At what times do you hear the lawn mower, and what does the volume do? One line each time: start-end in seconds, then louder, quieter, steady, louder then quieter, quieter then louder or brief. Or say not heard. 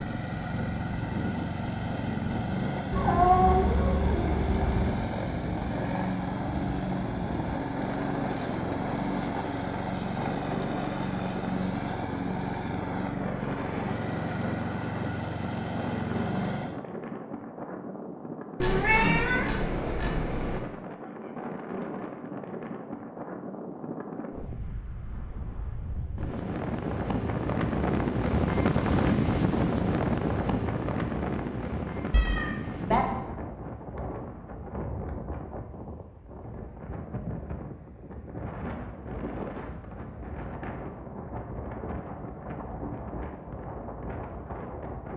0.0-16.9 steady.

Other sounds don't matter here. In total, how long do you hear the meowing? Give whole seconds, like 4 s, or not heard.
5 s.